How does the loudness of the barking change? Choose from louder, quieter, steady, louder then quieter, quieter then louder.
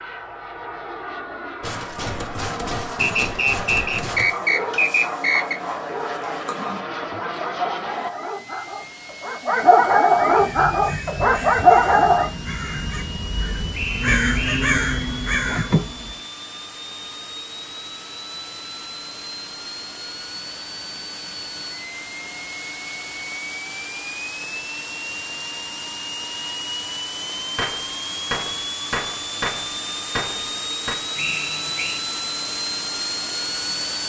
louder.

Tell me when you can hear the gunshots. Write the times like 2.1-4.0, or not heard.
1.6-4.3, 27.6-31.1.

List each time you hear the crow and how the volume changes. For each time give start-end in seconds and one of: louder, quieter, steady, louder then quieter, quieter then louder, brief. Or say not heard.
10.2-16.2 louder.